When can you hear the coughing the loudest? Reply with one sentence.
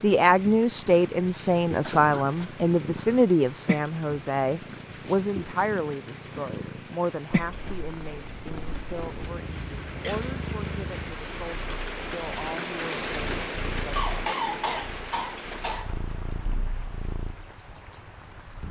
The volume of the coughing peaks at 14 seconds.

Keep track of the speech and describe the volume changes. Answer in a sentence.
The loudness of the speech goes down.